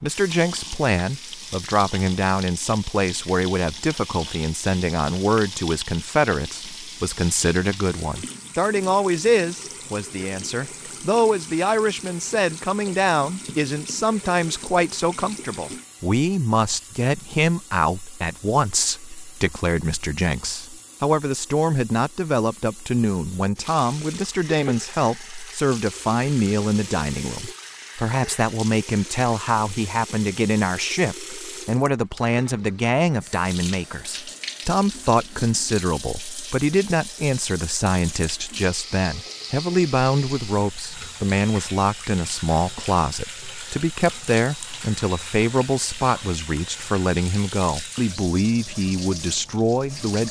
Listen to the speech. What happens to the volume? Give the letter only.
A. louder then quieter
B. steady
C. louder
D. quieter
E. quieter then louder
B.